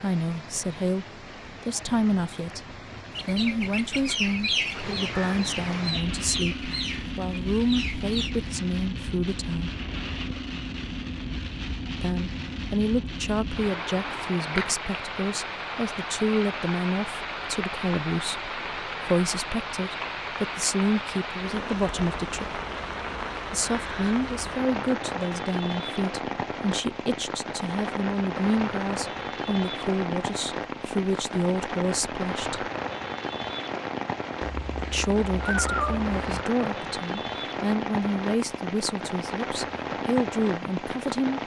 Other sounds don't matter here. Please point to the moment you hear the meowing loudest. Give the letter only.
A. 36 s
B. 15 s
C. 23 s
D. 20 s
A.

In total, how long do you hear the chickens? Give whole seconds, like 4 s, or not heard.
5 s.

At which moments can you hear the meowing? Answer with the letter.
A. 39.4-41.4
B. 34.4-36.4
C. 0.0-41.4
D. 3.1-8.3
B.